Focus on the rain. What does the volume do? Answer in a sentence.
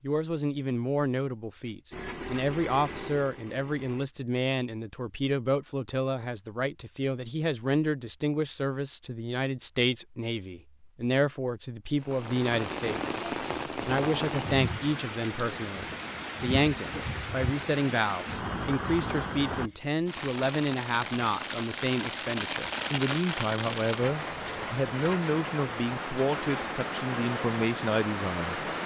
The volume of the rain stays about the same.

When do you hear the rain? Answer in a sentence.
The rain can be heard from 11.9 to 28.8 s.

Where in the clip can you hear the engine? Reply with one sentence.
The engine can be heard from 1.9 to 4.1 s.